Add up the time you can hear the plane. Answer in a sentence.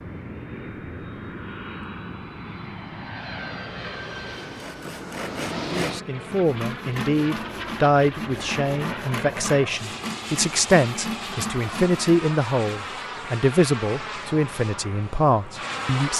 The plane can be heard for 16 seconds in total.